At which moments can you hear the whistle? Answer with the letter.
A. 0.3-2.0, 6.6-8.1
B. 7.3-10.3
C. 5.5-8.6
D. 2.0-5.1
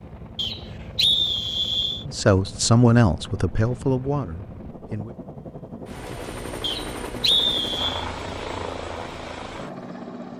A.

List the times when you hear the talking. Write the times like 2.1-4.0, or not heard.
2.0-5.1.